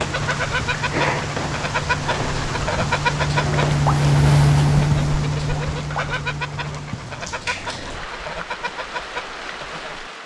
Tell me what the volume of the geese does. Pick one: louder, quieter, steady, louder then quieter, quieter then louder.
quieter.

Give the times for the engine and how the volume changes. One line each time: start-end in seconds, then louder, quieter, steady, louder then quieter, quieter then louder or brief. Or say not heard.
0.0-7.0 louder then quieter.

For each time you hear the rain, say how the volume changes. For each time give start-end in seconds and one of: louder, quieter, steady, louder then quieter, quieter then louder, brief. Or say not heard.
0.0-10.2 quieter.